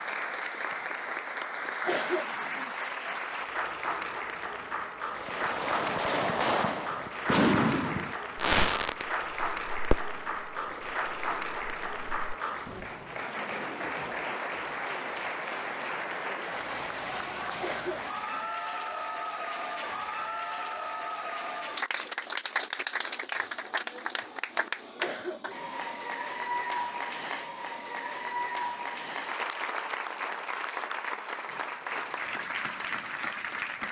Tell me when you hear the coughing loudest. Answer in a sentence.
The volume of the coughing peaks at 2 seconds.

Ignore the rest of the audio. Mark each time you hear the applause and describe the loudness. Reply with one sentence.
The applause can be heard from 0.0 to 33.8 s, at a steady volume.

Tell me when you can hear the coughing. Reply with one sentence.
You can hear the coughing from 1.9 to 2.8 s, from 17.6 to 18.5 s and from 25.0 to 25.9 s.